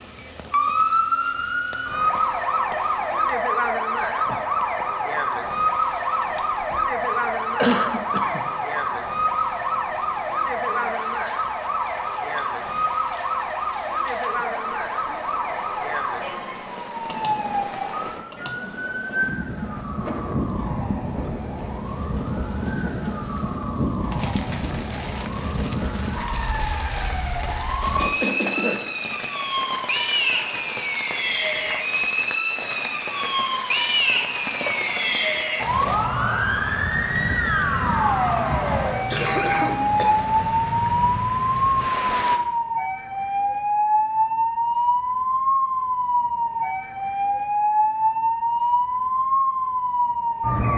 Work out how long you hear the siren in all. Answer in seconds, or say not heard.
51 s.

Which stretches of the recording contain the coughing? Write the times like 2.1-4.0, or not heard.
7.5-8.4, 27.9-28.8, 39.1-40.1.